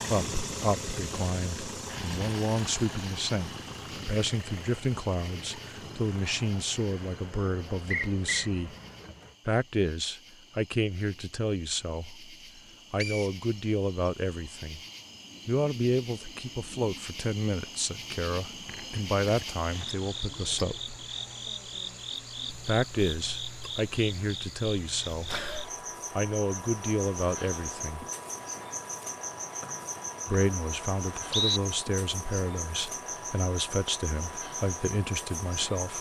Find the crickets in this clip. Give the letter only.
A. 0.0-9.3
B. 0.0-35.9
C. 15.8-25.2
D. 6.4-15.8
B.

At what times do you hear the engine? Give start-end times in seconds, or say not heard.
0.0-9.3.